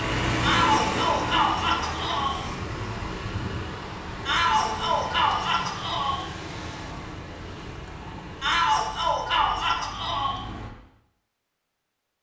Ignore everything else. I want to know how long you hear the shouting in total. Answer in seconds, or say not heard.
6 s.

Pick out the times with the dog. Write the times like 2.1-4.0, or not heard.
not heard.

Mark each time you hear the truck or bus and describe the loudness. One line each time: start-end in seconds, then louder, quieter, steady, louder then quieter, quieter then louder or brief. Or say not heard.
0.0-10.7 quieter.